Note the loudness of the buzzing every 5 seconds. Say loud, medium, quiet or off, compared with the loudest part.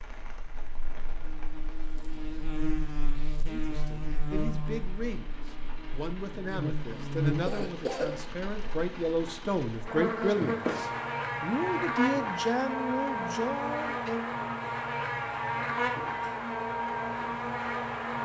medium, loud, loud, loud.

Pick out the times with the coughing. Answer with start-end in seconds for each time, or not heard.
6.8-8.2.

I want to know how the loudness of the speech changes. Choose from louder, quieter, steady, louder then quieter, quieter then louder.
louder.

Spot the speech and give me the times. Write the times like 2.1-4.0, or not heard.
3.5-14.2.